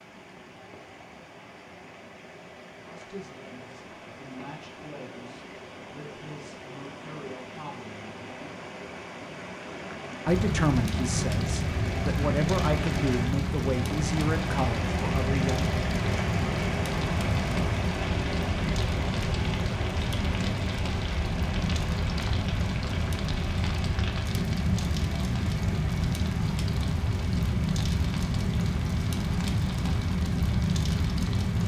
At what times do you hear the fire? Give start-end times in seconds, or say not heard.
10.2-31.6.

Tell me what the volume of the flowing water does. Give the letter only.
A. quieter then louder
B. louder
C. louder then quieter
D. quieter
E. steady
C.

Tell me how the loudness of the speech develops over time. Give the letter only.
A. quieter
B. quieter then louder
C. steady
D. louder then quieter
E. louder
E.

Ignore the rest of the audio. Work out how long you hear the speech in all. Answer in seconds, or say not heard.
11 s.